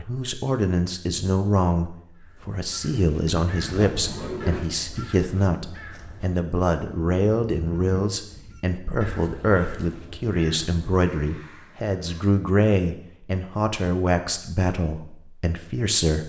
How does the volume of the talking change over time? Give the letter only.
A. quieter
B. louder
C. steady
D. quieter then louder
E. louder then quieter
C.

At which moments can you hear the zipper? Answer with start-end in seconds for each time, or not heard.
3.2-4.7.